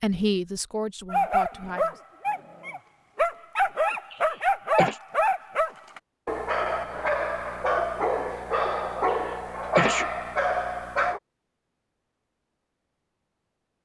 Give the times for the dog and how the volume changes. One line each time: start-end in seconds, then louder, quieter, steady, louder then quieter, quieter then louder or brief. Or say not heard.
1.1-11.2 steady.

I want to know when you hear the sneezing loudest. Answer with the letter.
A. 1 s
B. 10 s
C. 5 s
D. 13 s
B.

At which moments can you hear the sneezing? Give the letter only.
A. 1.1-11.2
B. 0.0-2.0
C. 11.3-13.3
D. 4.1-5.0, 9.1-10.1
D.